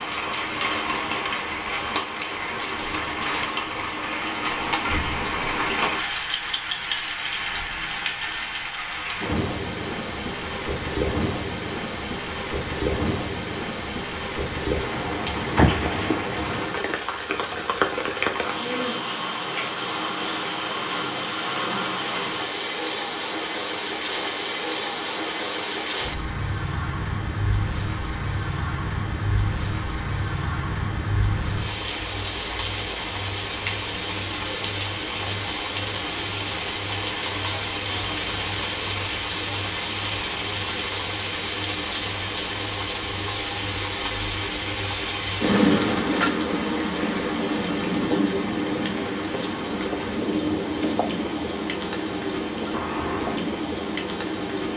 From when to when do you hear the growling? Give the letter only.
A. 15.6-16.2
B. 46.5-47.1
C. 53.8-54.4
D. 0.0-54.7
A.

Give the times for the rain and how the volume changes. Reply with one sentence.
The rain can be heard from 0.0 to 54.7 s, at a steady volume.